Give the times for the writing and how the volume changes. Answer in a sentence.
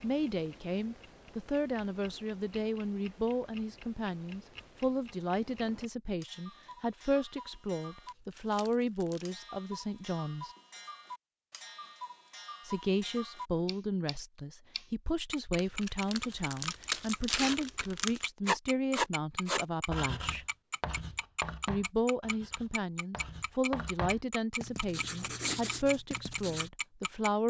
The writing can be heard from 18.4 to 26.7 s, getting quieter then louder.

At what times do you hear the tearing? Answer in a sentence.
The tearing can be heard from 8.1 to 9.3 s and from 15.6 to 18.2 s.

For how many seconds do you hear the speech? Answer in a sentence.
You can hear the speech for 24 seconds altogether.